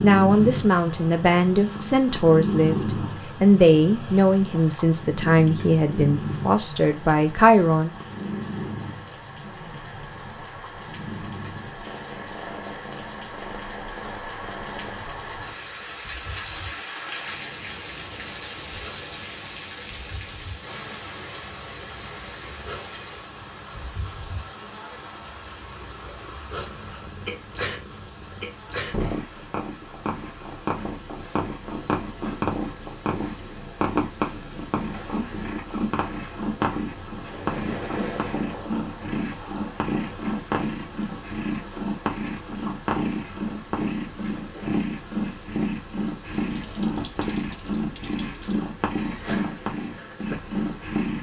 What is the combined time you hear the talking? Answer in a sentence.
You can hear the talking for 8 seconds altogether.